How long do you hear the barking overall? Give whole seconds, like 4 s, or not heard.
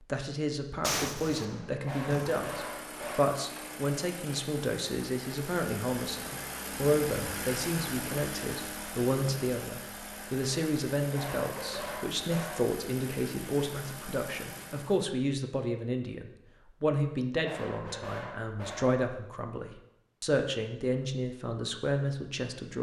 5 s.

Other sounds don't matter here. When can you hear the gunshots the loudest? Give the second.
1 s.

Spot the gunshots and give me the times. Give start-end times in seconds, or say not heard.
0.8-2.4.